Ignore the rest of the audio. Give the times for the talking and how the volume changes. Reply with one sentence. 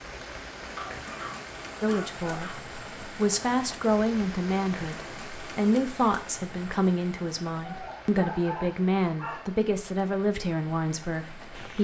You can hear the talking from 1.8 to 11.7 s, at a steady volume.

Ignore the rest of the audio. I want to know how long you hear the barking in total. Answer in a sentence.
You can hear the barking for 4 seconds altogether.